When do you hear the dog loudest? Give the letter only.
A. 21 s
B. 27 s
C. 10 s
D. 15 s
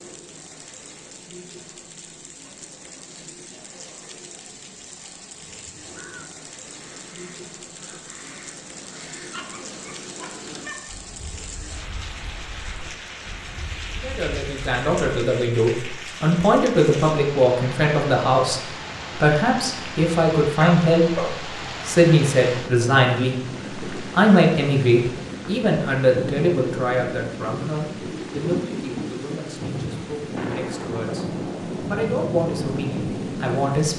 A.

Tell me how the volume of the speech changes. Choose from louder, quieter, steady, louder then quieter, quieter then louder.
quieter.